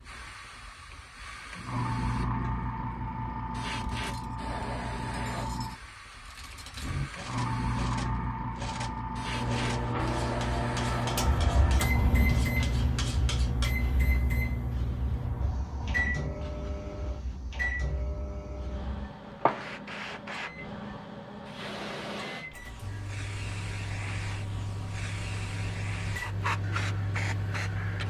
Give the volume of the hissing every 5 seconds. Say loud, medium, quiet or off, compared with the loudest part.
loud, loud, loud, medium, medium, loud.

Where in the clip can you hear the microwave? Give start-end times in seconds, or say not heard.
9.2-28.0.